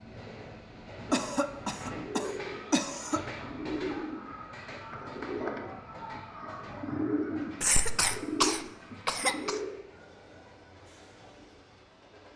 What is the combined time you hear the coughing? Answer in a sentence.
You can hear the coughing for 4 seconds altogether.